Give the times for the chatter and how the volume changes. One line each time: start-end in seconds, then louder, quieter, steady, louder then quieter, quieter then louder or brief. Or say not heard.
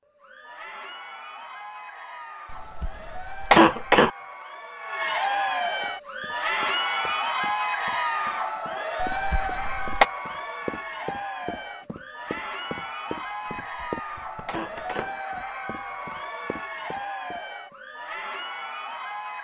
0.1-19.3 louder then quieter.